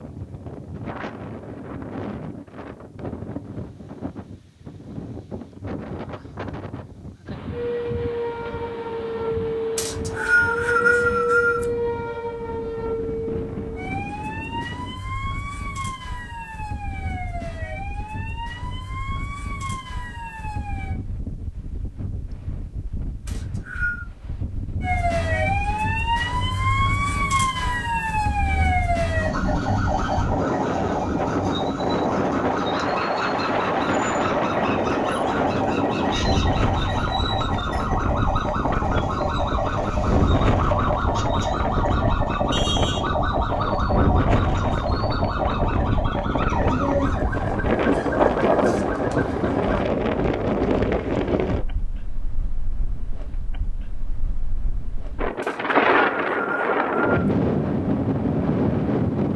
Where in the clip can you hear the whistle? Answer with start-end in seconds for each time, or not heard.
9.8-11.7, 23.2-24.1, 55.4-57.2.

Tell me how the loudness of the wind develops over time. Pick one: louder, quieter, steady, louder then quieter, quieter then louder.
louder.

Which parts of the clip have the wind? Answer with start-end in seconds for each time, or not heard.
0.0-59.3.